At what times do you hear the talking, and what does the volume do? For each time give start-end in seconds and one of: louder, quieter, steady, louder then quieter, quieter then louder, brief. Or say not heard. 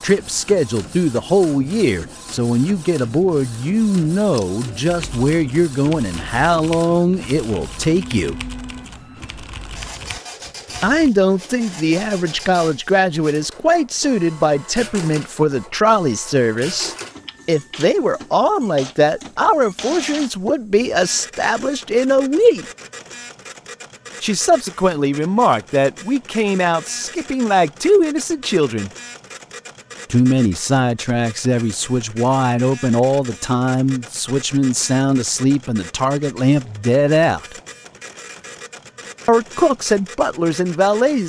0.0-8.3 steady
10.8-22.6 steady
24.2-28.9 steady
30.1-37.5 steady
39.2-41.2 brief.